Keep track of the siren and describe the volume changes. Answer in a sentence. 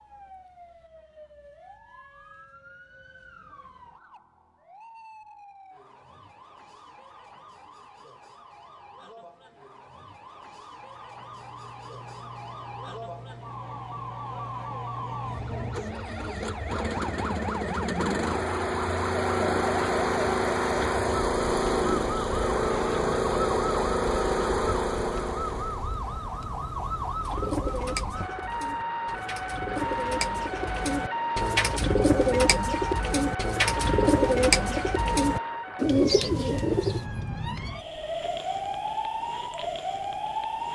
The volume of the siren goes up.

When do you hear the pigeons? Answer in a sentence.
The pigeons can be heard from 27.2 to 37.0 s.